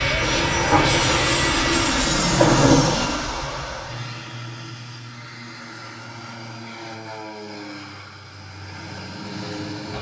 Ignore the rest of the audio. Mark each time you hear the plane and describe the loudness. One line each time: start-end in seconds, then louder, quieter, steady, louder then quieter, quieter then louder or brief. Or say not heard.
0.0-9.9 quieter.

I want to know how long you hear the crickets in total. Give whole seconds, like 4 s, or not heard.
not heard.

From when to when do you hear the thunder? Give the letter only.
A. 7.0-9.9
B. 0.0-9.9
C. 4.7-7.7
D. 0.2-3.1
D.